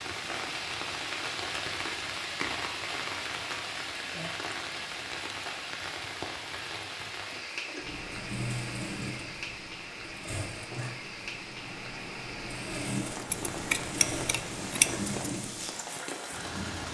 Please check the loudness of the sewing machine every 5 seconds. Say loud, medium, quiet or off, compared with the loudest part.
off, loud, loud, loud.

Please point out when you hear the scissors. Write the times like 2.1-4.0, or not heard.
13.3-15.1.